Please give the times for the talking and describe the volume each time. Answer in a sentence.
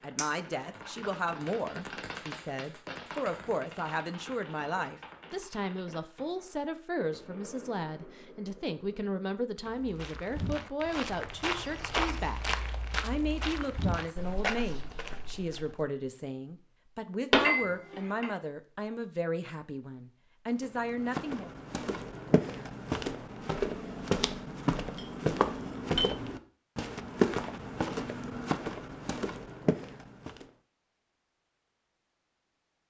The talking can be heard from 0.0 to 21.5 s, at a steady volume.